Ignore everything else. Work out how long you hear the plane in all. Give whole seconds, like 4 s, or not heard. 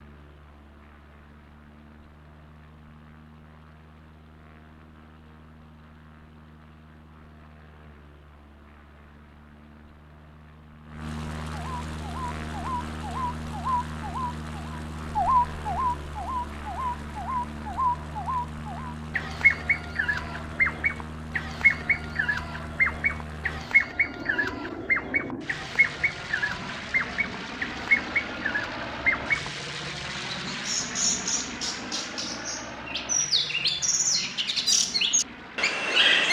36 s.